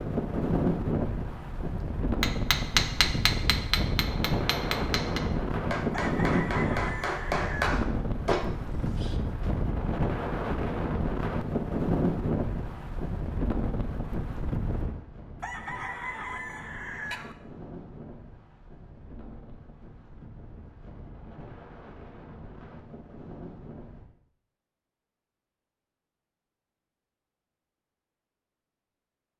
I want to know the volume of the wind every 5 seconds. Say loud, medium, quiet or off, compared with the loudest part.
loud, loud, loud, quiet, quiet, off.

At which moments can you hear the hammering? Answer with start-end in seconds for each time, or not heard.
2.2-9.2.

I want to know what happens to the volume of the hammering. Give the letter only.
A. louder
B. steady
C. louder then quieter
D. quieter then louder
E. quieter
D.